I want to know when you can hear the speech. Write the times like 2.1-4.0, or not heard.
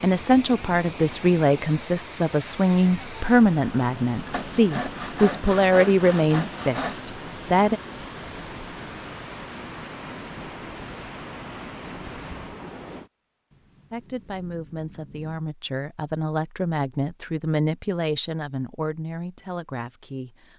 0.0-7.8, 13.9-20.5.